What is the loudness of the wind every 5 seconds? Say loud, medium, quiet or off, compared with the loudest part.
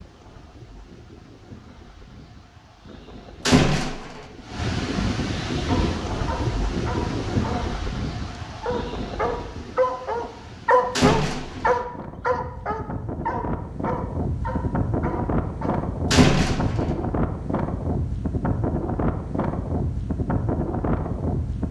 medium, loud, medium, loud, loud.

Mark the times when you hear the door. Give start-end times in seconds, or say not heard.
3.5-4.2, 10.9-11.8, 16.1-16.9.